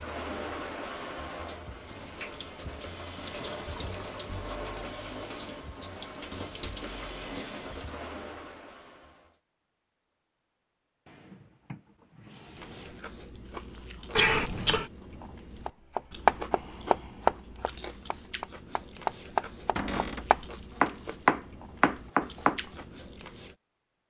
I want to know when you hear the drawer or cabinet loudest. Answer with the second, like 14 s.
20 s.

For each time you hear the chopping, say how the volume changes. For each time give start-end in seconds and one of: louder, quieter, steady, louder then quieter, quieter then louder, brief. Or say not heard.
15.7-22.6 quieter then louder.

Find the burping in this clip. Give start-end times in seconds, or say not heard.
14.2-14.9.